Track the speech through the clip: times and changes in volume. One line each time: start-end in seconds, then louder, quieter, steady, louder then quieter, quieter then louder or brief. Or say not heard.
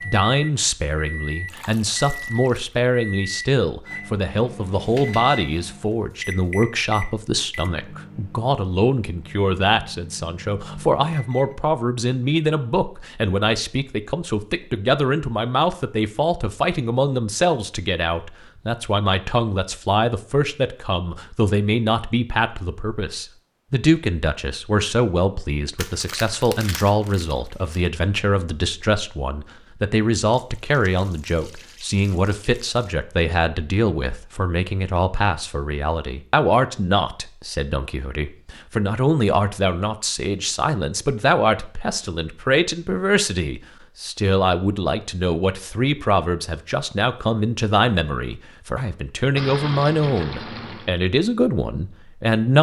0.0-52.5 steady.